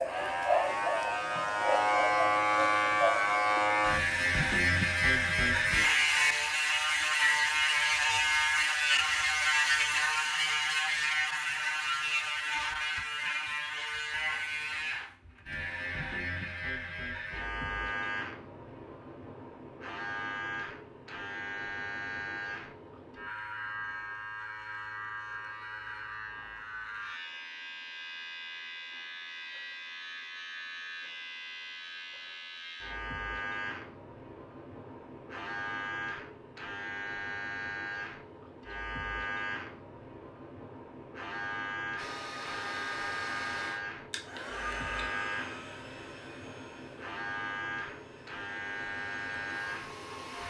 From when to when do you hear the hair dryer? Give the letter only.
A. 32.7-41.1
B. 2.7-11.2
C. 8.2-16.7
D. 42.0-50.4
D.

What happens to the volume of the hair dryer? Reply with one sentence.
The loudness of the hair dryer goes down, then up.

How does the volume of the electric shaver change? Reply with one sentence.
The loudness of the electric shaver goes down.